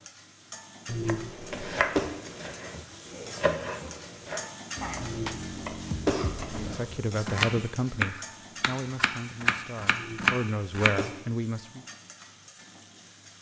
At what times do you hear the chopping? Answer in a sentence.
The chopping can be heard from 1.1 to 10.9 s.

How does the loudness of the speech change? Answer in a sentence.
The loudness of the speech goes down, then up.